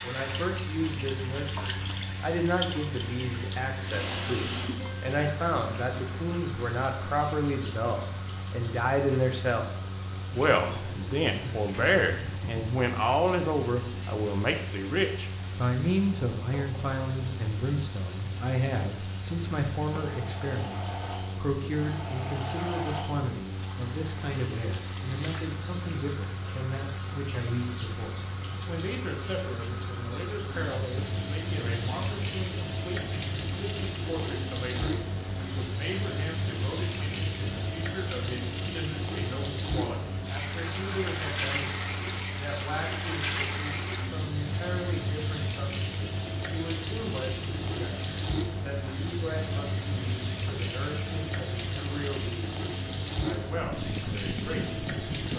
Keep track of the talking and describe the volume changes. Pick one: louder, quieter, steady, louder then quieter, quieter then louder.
quieter.